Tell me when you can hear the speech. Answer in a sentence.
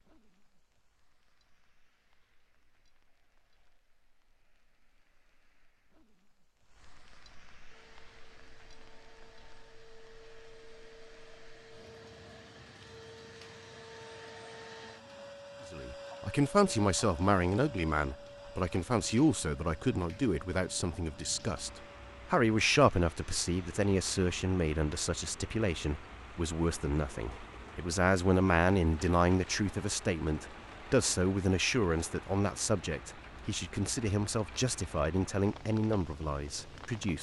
The speech can be heard from 15.7 to 37.1 s.